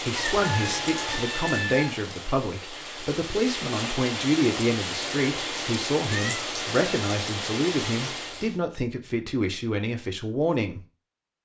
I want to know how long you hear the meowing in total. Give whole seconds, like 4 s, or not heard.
2 s.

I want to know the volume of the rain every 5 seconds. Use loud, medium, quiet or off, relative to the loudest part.
loud, loud, off.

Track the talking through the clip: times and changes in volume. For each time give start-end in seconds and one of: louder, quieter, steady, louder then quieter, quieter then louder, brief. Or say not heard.
0.0-10.8 steady.